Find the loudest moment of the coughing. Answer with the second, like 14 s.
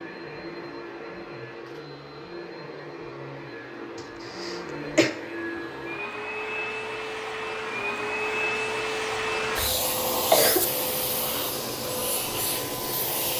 10 s.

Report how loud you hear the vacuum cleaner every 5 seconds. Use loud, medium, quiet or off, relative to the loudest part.
medium, loud, loud.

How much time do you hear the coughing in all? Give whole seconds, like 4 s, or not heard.
3 s.